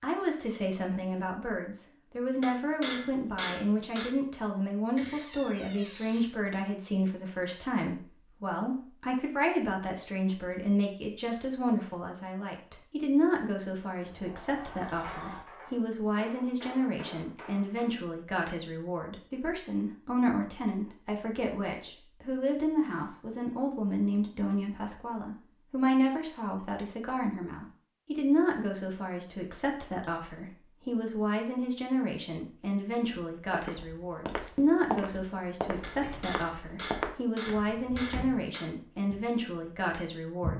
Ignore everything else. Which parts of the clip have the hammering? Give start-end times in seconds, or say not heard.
2.4-4.2, 15.0-17.9, 35.8-38.7.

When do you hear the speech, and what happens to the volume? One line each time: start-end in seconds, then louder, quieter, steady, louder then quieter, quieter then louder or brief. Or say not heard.
0.0-40.5 steady.